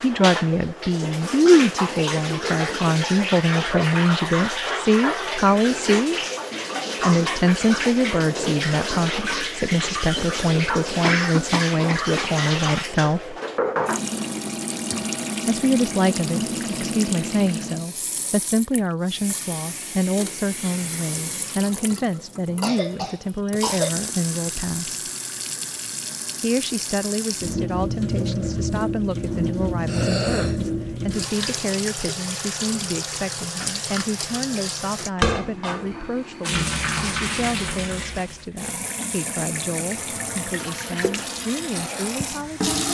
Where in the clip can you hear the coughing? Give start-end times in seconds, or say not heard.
11.0-12.1, 22.1-23.9, 29.9-30.6.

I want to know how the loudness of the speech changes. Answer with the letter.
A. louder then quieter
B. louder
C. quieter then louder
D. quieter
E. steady
D.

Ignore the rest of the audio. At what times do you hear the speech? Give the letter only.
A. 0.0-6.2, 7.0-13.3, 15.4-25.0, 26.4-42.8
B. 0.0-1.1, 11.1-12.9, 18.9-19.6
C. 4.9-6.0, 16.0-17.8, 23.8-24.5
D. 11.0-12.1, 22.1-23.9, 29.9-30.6
A.